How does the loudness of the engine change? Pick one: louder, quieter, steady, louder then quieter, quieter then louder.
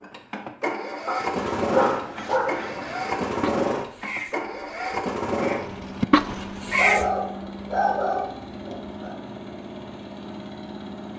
quieter.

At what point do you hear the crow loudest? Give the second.
7 s.